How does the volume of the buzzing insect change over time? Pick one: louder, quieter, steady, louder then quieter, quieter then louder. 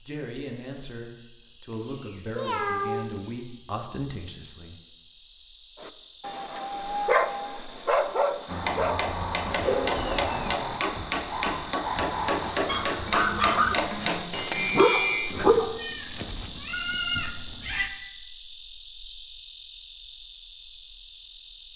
louder.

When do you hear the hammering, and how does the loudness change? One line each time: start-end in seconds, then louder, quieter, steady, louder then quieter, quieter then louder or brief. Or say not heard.
8.4-15.4 steady.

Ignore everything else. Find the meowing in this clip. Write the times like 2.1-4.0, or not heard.
1.7-3.3, 9.9-10.7, 15.3-17.9.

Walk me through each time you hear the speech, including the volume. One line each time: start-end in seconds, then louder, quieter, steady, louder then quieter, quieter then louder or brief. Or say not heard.
0.0-4.8 steady.